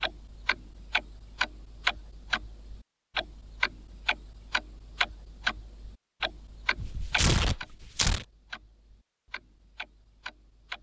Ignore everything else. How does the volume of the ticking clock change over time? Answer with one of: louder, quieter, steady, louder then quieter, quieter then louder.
quieter.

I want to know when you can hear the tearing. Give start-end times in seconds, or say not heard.
6.8-8.2.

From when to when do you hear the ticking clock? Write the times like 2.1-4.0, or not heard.
0.0-10.7.